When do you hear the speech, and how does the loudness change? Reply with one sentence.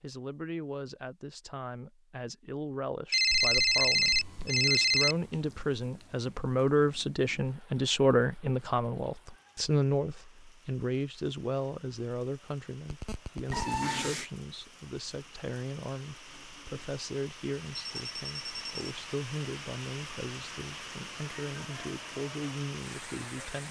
The speech can be heard from 0.0 to 23.6 s, getting louder then quieter.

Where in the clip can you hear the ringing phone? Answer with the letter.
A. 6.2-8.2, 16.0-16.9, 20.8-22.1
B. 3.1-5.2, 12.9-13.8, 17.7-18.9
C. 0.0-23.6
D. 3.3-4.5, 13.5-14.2
B.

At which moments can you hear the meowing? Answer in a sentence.
You can hear the meowing from 3.3 to 4.5 s and from 13.5 to 14.2 s.